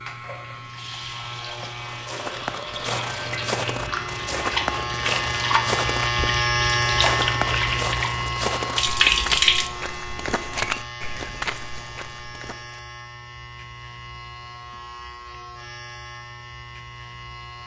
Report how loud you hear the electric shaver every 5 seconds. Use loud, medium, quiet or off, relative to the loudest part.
medium, loud, quiet, quiet.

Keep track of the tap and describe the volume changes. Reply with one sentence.
The loudness of the tap goes up.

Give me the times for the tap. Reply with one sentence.
You can hear the tap from 0.0 to 9.7 s.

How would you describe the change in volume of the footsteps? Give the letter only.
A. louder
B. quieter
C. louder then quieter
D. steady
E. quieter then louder
D.